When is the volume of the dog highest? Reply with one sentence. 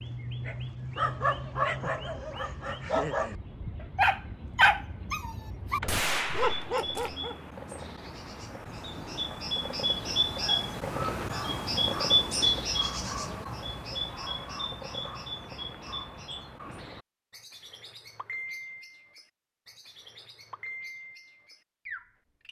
The loudest moment of the dog is at 5 seconds.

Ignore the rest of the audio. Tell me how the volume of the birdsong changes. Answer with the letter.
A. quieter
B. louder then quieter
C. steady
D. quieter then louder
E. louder
B.